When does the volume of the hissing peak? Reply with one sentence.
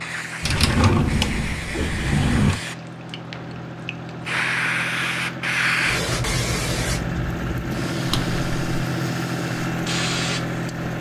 The volume of the hissing peaks at 6 seconds.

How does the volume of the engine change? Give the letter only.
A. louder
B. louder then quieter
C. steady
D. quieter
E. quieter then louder
A.